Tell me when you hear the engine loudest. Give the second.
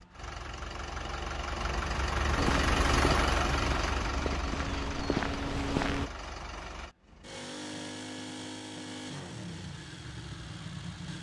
3 s.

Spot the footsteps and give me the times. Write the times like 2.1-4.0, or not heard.
2.4-6.1.